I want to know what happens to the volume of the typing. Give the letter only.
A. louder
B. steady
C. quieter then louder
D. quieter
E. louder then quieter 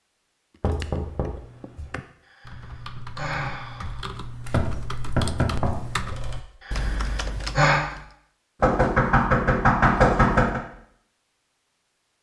A.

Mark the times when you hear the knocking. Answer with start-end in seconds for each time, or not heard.
0.6-1.9, 4.5-6.4, 8.6-10.6.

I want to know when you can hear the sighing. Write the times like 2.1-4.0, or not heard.
2.2-4.0, 6.6-7.8.